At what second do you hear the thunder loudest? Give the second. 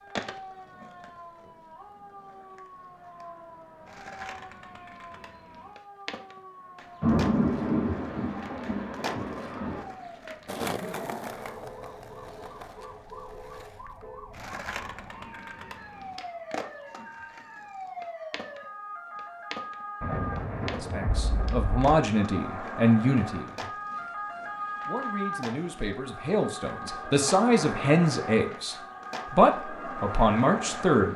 7 s.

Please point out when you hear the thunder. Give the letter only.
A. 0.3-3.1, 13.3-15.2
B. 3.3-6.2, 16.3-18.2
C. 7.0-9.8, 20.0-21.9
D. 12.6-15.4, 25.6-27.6
C.